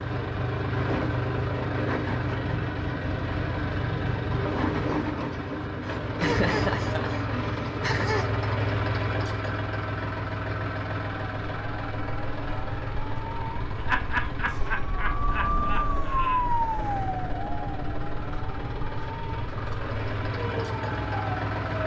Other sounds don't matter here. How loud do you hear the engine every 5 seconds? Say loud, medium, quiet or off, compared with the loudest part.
loud, loud, medium, medium, loud.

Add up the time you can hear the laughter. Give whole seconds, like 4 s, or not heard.
5 s.